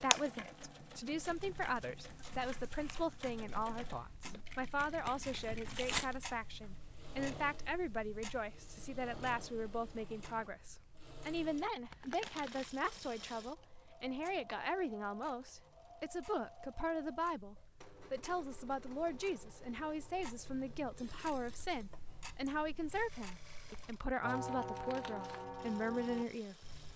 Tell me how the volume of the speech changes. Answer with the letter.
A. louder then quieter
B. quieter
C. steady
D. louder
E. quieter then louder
C.